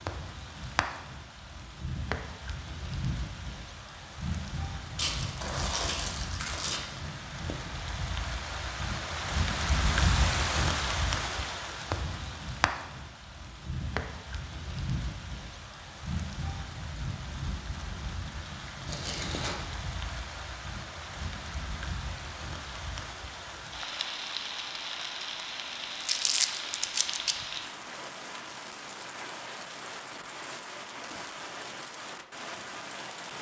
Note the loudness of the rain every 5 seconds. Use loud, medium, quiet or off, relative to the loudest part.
medium, loud, loud, medium, medium, medium, medium.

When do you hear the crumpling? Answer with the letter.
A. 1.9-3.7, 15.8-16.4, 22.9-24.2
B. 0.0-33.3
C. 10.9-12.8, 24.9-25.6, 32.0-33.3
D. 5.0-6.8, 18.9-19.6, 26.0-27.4
D.